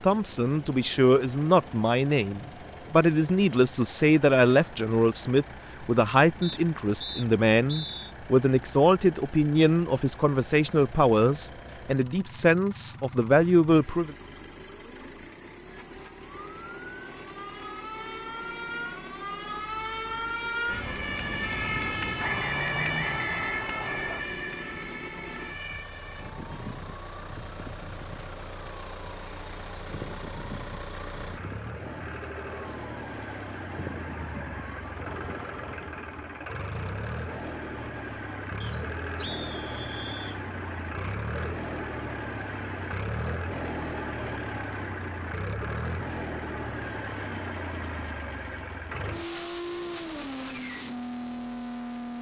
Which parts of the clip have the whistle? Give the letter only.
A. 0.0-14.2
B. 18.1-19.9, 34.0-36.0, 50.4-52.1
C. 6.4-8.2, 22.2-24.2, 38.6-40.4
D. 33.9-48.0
C.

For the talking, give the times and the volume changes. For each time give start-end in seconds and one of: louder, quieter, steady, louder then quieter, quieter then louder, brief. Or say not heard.
0.0-14.2 steady.